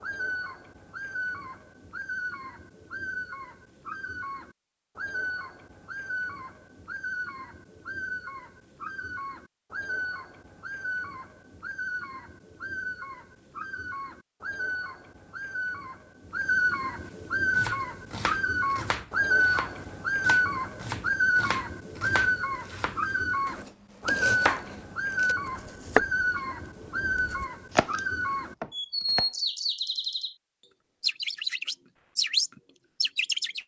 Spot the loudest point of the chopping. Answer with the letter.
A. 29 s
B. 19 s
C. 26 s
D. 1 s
C.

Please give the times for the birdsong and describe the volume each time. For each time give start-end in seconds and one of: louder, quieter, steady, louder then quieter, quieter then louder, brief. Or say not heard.
0.0-30.4 louder
31.0-33.6 brief.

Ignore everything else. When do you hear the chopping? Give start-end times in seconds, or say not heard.
17.5-29.2.